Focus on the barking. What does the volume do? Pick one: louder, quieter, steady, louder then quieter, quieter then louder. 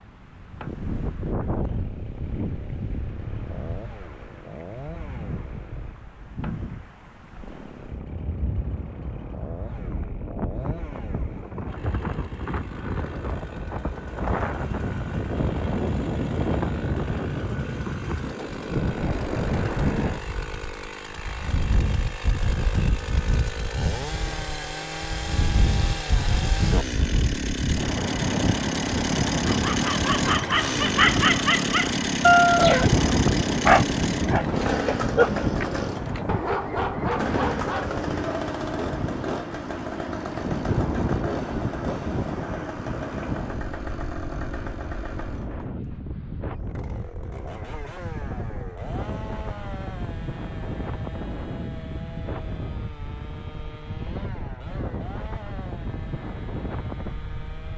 louder then quieter.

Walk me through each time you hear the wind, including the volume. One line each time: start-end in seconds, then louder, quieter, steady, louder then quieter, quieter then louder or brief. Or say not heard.
0.0-57.7 louder then quieter.